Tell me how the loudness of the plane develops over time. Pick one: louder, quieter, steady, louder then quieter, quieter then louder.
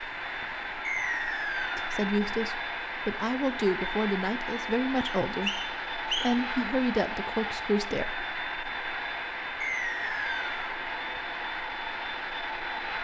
steady.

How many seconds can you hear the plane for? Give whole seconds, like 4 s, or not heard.
13 s.